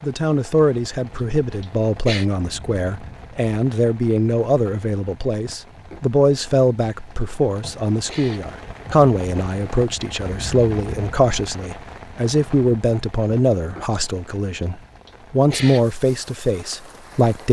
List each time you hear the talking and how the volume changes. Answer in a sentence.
The talking can be heard from 0.0 to 17.4 s, at a steady volume.